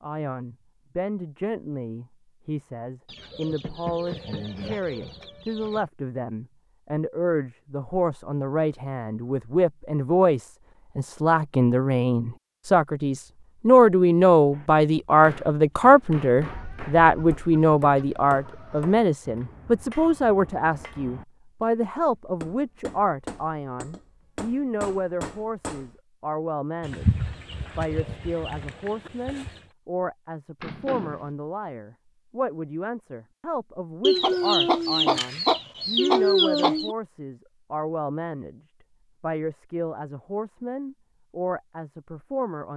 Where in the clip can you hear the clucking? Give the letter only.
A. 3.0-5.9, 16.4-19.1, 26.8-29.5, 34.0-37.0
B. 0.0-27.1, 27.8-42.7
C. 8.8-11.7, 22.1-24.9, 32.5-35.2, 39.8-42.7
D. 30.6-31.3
A.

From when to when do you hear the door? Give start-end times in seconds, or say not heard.
30.6-31.3.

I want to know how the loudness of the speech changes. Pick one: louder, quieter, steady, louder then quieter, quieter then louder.
louder then quieter.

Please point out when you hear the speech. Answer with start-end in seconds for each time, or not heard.
0.0-27.1, 27.8-42.7.